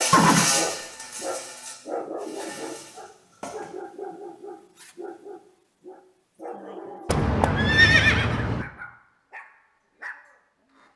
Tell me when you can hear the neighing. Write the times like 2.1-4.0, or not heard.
0.1-0.6, 7.0-8.7.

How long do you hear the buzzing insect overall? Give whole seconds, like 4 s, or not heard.
4 s.